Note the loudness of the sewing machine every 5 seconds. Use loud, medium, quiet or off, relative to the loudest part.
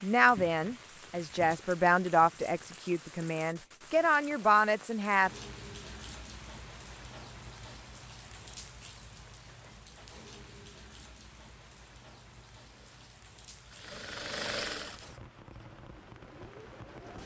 off, off, loud, quiet.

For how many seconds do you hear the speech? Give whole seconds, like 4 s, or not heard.
5 s.